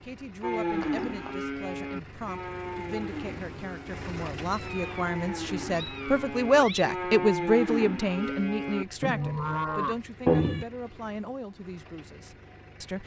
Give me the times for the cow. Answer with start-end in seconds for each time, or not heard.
0.4-10.0.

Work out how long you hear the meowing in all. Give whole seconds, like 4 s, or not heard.
3 s.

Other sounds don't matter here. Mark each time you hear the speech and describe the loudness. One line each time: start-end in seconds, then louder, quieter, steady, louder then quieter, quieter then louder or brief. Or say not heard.
0.0-13.0 louder then quieter.